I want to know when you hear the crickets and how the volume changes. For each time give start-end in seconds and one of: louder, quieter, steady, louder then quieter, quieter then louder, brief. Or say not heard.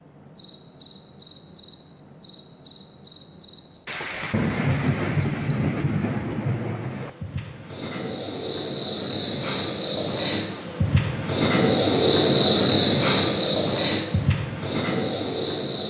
0.0-15.8 louder.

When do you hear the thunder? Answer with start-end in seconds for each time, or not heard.
3.9-7.1.